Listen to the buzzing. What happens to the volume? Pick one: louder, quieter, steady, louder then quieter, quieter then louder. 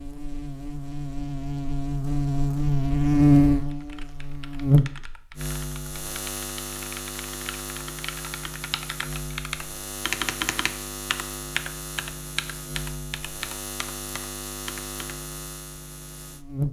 quieter.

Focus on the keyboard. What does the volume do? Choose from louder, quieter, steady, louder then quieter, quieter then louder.
louder then quieter.